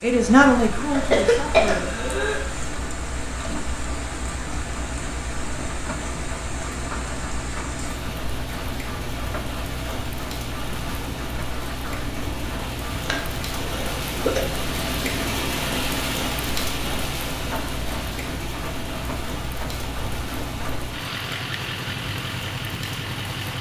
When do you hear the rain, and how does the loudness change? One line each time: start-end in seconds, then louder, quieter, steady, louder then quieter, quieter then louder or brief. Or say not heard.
0.0-23.5 louder then quieter.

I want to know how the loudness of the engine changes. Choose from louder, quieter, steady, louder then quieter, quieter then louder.
steady.